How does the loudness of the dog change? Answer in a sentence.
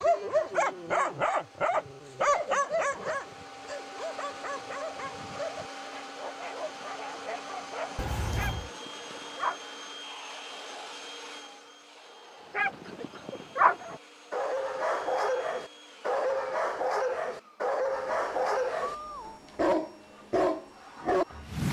The loudness of the dog goes down, then up.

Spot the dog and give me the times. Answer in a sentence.
You can hear the dog from 0.0 to 9.7 s and from 12.5 to 21.6 s.